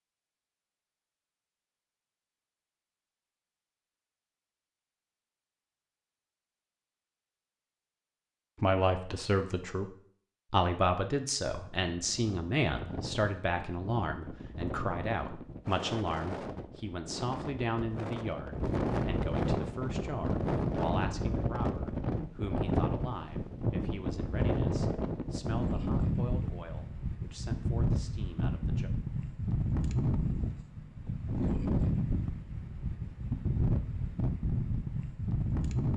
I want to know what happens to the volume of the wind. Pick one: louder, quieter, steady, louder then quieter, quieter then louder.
louder.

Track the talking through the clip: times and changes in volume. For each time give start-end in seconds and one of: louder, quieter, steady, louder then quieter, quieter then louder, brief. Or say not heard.
8.6-9.9 brief
10.5-28.9 quieter.